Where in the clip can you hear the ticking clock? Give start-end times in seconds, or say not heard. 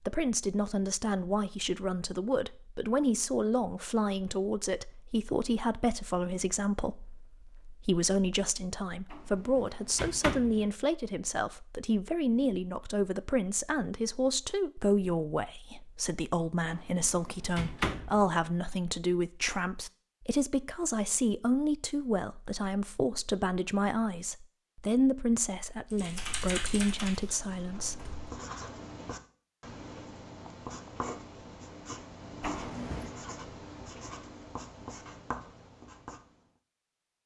not heard.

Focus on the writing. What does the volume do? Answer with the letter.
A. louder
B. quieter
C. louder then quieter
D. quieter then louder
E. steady
E.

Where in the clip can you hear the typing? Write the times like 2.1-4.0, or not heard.
25.9-28.3.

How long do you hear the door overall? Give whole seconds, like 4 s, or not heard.
4 s.